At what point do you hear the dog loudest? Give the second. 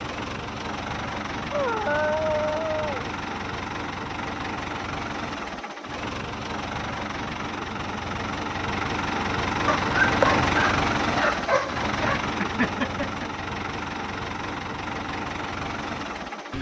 10 s.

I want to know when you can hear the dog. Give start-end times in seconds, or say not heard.
1.5-3.1, 9.7-12.2.